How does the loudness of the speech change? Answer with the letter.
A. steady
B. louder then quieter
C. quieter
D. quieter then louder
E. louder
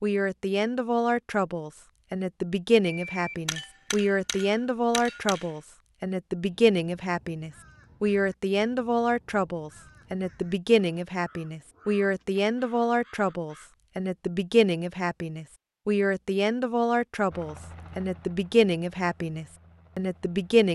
A.